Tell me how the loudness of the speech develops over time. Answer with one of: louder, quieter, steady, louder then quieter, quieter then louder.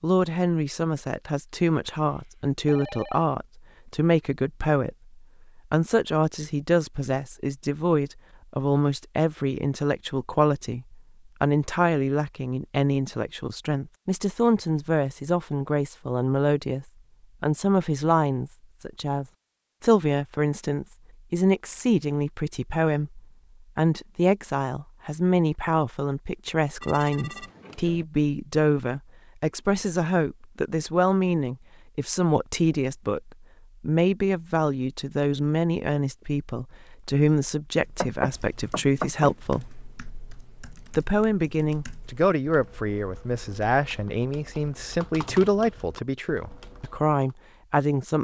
steady.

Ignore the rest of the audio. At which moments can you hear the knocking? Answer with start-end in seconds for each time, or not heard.
38.0-39.3.